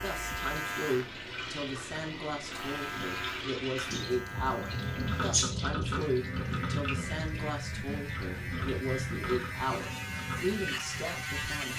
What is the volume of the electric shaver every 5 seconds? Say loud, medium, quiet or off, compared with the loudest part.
loud, medium, loud.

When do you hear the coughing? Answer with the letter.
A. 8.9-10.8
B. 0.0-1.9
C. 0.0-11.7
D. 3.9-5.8
D.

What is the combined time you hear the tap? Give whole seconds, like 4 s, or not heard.
12 s.